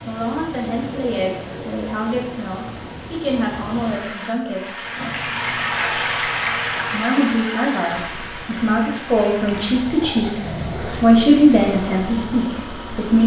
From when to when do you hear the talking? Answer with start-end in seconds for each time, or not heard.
0.1-4.8, 6.9-10.4, 11.0-13.2.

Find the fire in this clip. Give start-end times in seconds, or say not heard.
not heard.